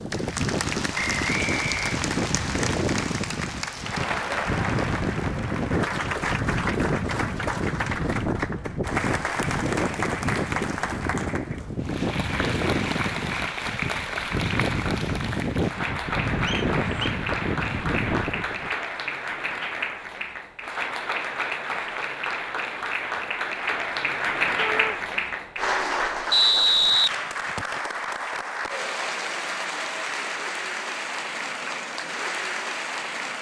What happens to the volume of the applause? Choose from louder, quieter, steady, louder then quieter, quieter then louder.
steady.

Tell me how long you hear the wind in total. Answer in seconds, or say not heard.
19 s.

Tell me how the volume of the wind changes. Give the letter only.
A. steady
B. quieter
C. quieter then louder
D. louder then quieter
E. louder
A.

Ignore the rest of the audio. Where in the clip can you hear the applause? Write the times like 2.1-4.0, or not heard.
0.0-33.3.